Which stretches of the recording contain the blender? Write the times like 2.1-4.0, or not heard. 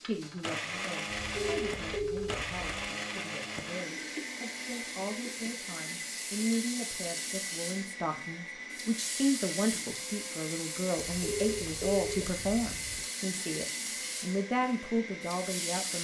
0.0-16.0.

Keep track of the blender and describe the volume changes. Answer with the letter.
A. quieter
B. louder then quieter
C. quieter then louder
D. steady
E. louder
A.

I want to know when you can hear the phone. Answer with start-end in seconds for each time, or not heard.
1.1-2.9, 11.0-13.0.